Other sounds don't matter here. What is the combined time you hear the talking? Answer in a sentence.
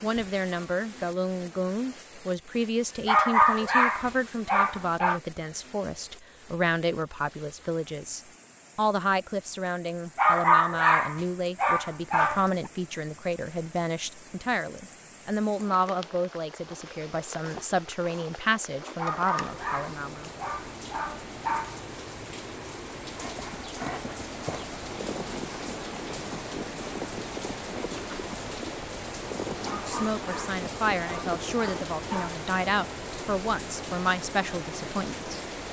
You can hear the talking for 26 seconds altogether.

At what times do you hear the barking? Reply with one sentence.
You can hear the barking from 3.0 to 5.2 s, from 10.2 to 12.7 s, from 18.9 to 21.8 s and from 29.6 to 32.4 s.